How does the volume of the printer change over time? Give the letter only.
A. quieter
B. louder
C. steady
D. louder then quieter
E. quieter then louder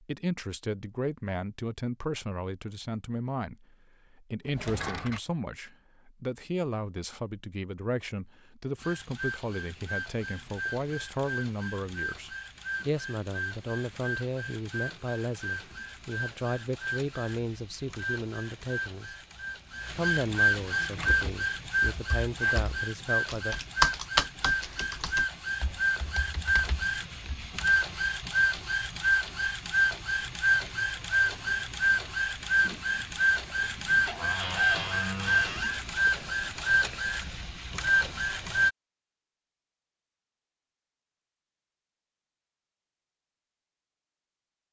B.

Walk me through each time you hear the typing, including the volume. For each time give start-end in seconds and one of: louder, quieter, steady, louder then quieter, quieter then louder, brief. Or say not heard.
20.9-27.6 louder then quieter.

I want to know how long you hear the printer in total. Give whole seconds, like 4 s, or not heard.
30 s.